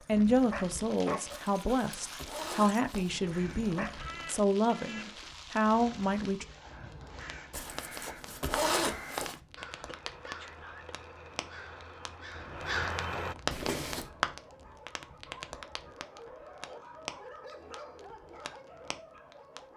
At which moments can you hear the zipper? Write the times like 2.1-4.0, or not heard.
1.3-3.1, 7.5-9.3, 13.5-14.1.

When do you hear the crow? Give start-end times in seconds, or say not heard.
3.0-13.3.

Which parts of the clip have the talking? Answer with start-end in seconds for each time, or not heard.
0.1-6.5.